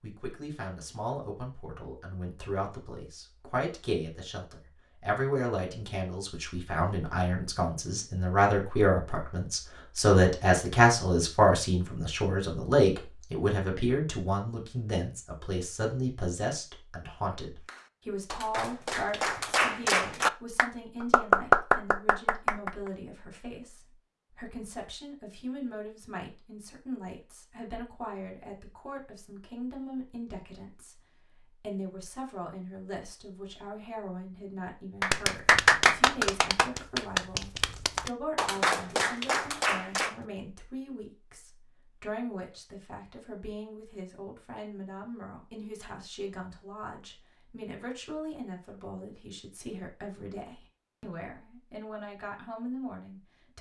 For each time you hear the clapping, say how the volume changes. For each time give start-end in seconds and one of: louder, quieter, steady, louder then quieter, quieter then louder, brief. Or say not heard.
17.6-22.8 louder
35.0-40.1 quieter.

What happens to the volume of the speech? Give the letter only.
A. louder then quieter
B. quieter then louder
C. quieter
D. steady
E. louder
C.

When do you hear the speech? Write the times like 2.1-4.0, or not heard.
0.0-31.0, 31.6-53.5.